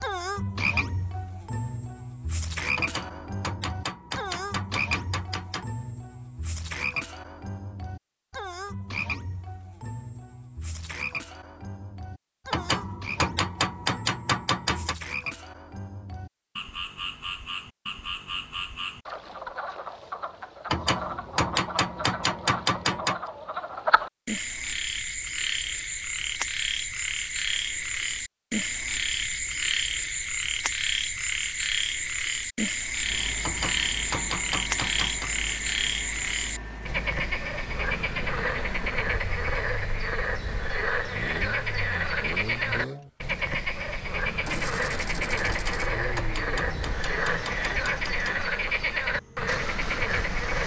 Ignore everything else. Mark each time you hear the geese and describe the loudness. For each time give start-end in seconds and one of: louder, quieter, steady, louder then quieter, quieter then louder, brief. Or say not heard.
not heard.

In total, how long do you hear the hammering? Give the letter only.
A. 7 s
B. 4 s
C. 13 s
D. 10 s
C.